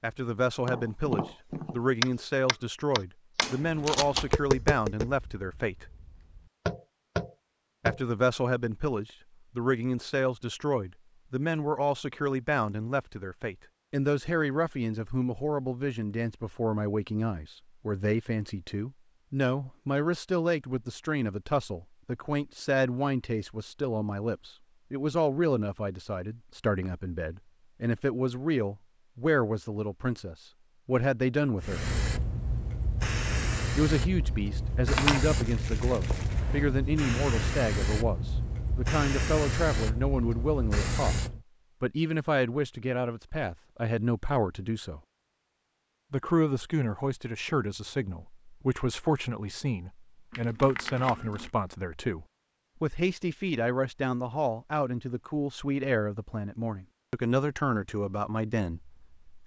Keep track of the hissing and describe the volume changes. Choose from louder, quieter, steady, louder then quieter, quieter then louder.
steady.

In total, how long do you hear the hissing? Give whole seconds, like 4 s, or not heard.
10 s.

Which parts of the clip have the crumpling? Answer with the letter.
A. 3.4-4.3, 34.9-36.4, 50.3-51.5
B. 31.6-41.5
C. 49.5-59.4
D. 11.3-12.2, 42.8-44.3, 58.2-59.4
A.